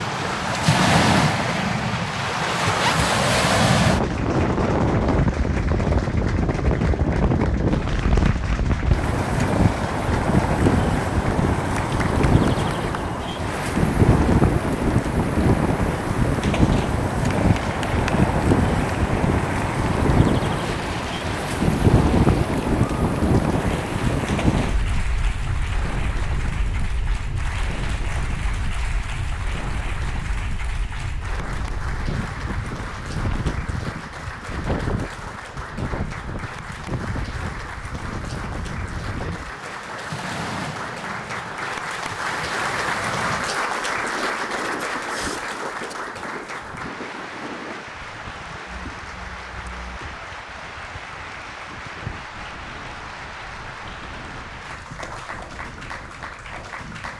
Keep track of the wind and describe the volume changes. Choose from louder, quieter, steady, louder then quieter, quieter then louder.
quieter.